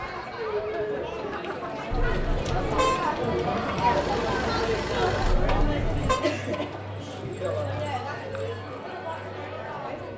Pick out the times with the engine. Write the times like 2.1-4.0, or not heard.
3.5-5.3.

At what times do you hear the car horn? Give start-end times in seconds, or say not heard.
2.0-3.1, 5.2-6.2.